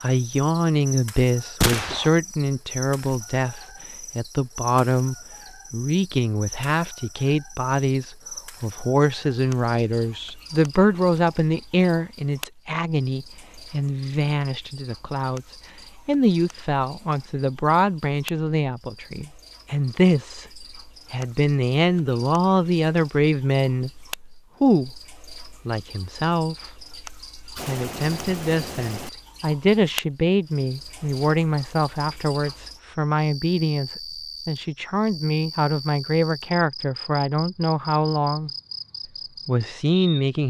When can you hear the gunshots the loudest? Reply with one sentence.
The loudest moment of the gunshots is at 2 seconds.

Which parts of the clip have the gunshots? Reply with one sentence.
The gunshots can be heard from 1.6 to 2.1 s and from 27.6 to 29.1 s.